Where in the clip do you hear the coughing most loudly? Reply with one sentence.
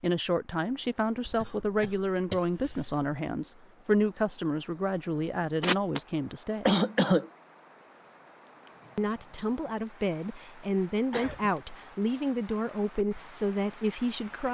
The volume of the coughing peaks at 7 seconds.